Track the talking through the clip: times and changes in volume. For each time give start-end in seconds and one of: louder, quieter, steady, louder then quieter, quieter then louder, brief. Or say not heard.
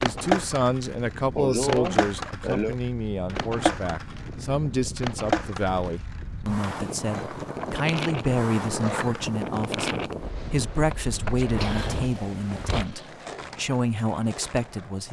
0.0-15.0 steady.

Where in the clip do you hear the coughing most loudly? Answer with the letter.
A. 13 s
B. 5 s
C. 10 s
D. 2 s
D.